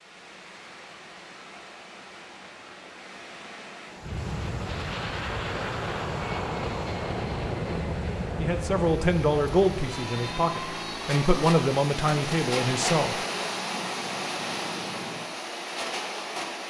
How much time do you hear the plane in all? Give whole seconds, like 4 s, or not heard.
11 s.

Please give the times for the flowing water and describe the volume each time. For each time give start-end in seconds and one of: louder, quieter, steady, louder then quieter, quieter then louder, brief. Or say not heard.
0.0-16.6 louder.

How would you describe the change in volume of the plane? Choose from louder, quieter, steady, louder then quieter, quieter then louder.
quieter.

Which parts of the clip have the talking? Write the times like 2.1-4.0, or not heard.
8.3-13.2.